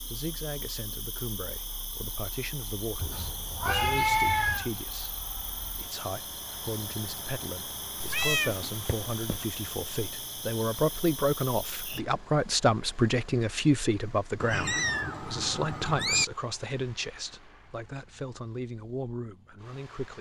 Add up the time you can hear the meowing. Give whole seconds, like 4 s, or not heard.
5 s.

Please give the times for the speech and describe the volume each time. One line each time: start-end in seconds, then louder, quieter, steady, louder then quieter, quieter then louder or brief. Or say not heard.
0.1-20.1 louder then quieter.